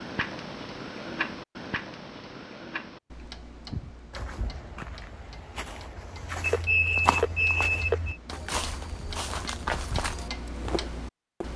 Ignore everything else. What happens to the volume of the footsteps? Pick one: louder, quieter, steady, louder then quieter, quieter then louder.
louder.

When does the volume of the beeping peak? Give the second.
7 s.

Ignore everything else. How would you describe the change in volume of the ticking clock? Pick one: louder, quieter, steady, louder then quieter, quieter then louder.
quieter then louder.